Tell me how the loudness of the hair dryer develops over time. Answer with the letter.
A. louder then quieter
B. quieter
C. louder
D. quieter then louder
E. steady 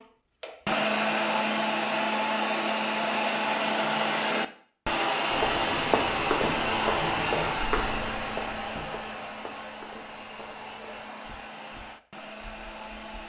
B.